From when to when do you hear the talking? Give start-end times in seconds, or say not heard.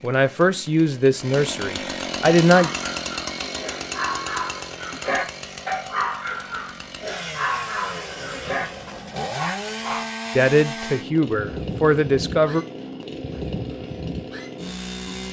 0.0-2.7, 10.3-12.7.